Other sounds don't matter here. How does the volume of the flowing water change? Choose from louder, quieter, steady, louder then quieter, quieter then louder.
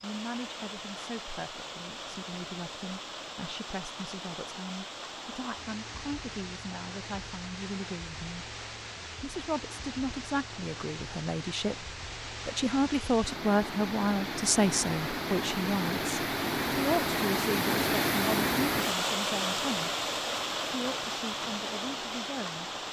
louder.